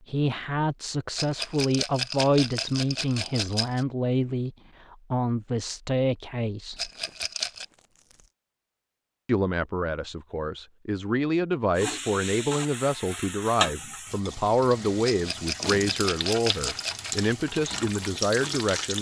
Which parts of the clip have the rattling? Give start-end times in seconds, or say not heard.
1.1-3.9, 6.8-7.7, 15.0-17.1.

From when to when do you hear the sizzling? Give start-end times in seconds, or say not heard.
11.8-18.9.